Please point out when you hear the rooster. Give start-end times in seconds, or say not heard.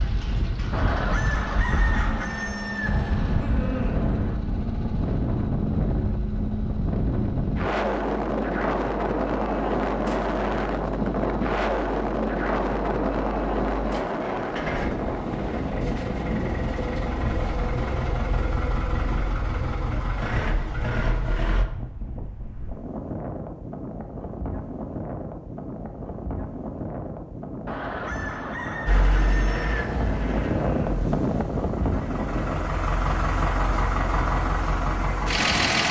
0.7-4.4, 27.6-31.2.